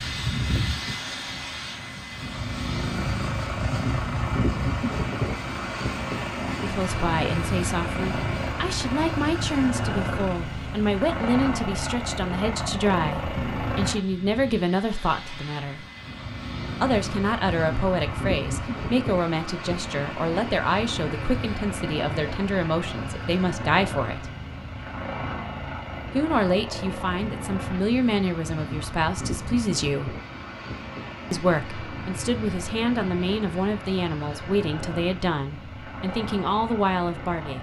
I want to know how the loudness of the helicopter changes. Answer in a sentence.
The volume of the helicopter goes down.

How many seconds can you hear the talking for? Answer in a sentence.
You can hear the talking for 27 seconds altogether.